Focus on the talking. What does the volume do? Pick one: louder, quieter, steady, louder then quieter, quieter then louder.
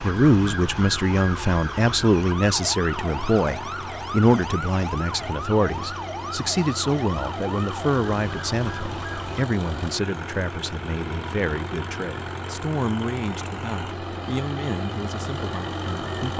quieter.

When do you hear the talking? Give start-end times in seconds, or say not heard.
0.0-16.3.